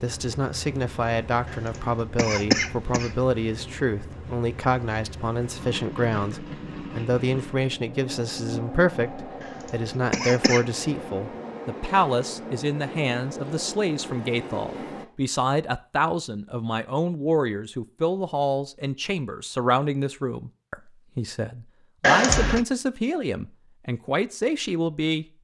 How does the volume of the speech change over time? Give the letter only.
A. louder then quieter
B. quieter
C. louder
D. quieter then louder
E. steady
E.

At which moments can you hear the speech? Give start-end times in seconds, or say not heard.
0.0-25.2.